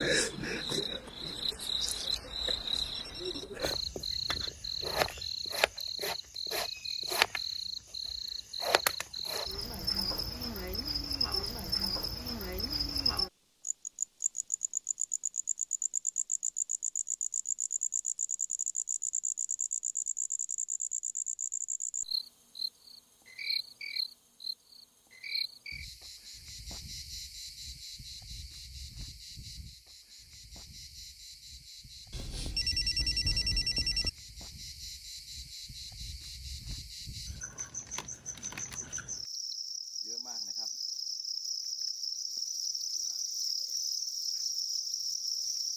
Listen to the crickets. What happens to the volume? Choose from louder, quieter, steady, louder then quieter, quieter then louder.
quieter then louder.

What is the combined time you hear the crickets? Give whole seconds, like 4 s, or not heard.
46 s.